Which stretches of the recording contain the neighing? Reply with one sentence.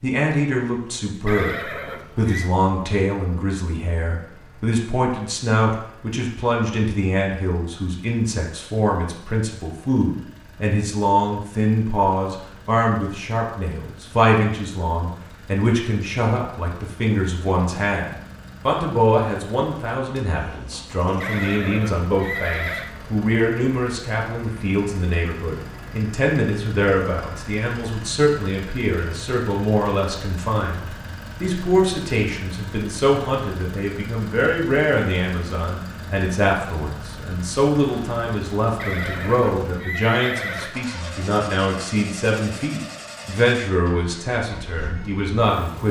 The neighing can be heard from 1.2 to 2.5 s, from 21.2 to 22.9 s and from 38.8 to 40.8 s.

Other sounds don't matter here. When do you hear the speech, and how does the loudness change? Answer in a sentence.
The speech can be heard from 0.0 to 45.8 s, at a steady volume.